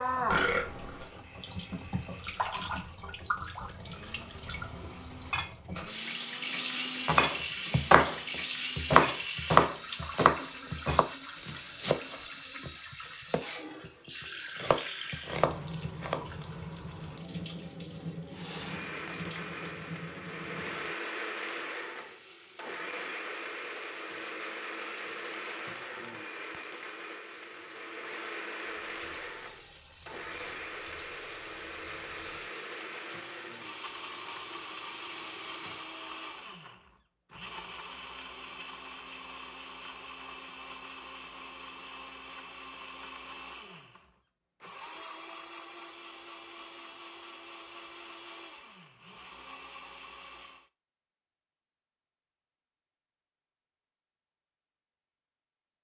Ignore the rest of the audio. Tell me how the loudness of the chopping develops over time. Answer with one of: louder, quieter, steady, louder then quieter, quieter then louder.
quieter then louder.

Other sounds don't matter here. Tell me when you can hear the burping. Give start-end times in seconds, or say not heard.
0.2-1.1.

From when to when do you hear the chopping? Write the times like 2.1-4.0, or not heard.
7.0-16.2.